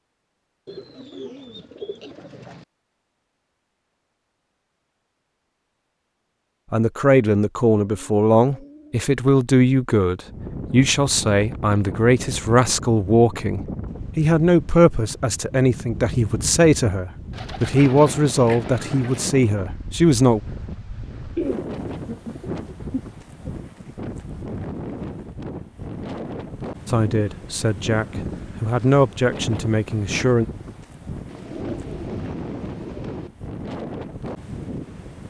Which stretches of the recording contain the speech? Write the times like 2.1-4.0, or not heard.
6.7-20.4, 26.9-30.4.